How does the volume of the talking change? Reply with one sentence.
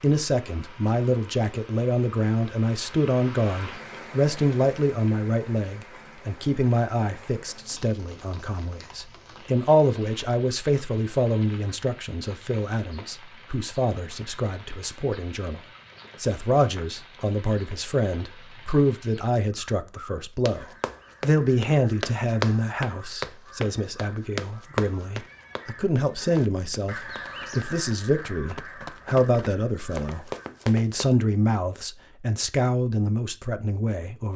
The volume of the talking stays about the same.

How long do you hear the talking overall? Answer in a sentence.
The talking can be heard for 34 seconds in total.